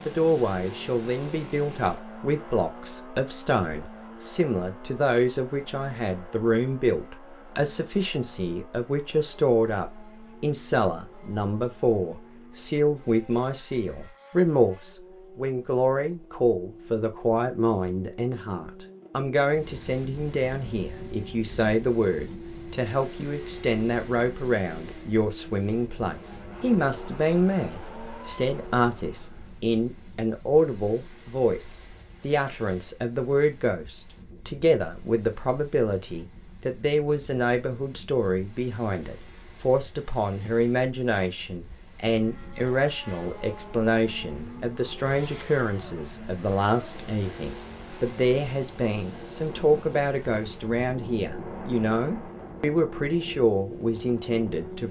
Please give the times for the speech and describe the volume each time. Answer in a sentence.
The speech can be heard from 0.1 to 54.8 s, at a steady volume.